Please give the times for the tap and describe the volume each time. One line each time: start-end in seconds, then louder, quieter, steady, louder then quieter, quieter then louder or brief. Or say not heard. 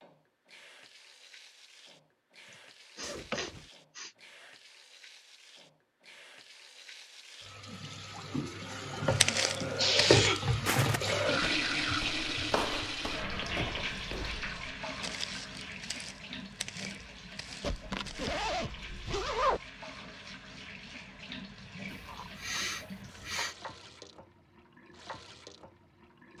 0.0-26.3 louder then quieter.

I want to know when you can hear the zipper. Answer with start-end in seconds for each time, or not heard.
3.0-3.7, 13.3-14.3, 17.6-19.6.